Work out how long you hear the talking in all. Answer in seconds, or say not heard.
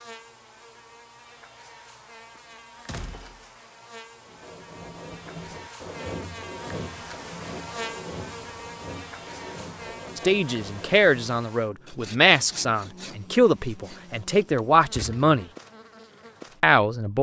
6 s.